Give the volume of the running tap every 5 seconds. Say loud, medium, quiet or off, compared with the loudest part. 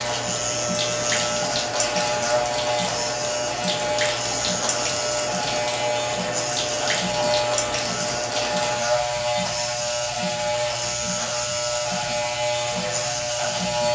loud, loud, medium.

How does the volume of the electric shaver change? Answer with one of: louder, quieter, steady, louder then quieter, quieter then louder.
steady.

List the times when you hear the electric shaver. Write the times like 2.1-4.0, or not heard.
0.0-13.9.